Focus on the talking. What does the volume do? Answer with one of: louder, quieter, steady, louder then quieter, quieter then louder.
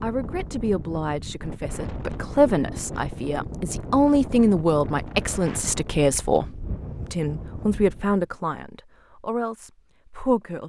louder then quieter.